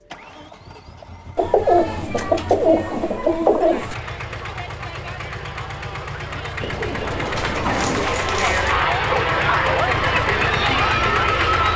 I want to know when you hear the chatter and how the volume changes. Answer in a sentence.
The chatter can be heard from 3.6 to 11.7 s, getting louder.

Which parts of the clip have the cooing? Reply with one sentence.
The cooing can be heard from 1.4 to 4.0 s and from 6.6 to 8.2 s.